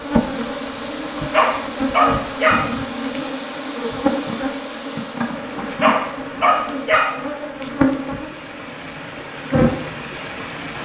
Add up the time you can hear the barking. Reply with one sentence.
You can hear the barking for 4 seconds altogether.